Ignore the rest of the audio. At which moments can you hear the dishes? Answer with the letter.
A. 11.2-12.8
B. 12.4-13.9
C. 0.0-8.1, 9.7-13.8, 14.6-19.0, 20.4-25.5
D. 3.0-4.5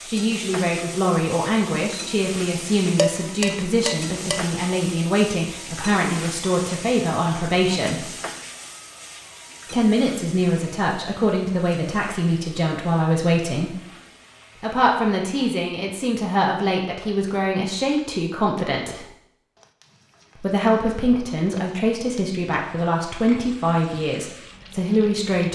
D.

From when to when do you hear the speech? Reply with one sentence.
The speech can be heard from 0.0 to 8.1 s, from 9.7 to 13.8 s, from 14.6 to 19.0 s and from 20.4 to 25.5 s.